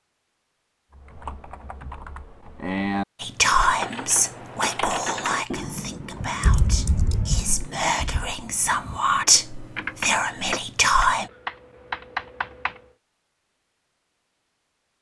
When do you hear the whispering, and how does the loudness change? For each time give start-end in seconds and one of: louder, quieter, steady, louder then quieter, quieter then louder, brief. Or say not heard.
3.2-11.3 quieter then louder.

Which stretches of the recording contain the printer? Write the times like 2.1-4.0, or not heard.
not heard.